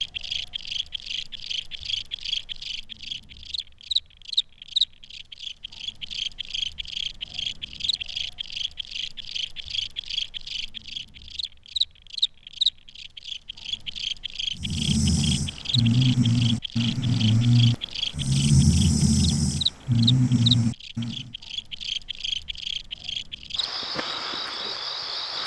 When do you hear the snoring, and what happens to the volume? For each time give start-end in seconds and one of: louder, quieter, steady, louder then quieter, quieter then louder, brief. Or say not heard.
14.6-21.3 steady.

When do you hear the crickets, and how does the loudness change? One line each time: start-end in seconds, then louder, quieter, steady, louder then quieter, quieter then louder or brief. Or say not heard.
0.0-25.4 steady.